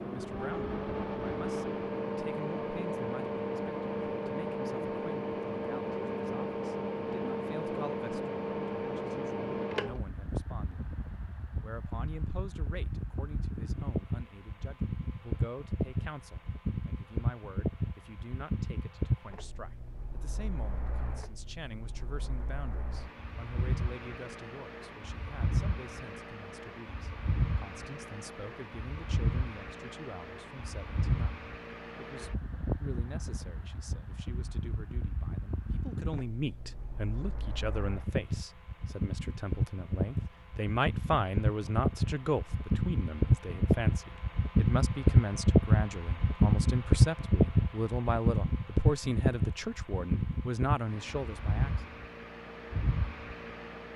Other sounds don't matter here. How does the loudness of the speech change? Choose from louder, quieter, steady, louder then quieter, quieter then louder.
louder.